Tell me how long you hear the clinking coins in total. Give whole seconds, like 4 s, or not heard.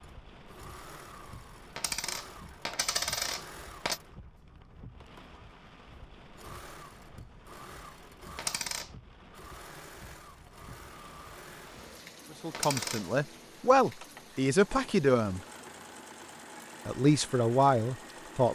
3 s.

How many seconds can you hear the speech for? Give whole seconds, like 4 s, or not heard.
5 s.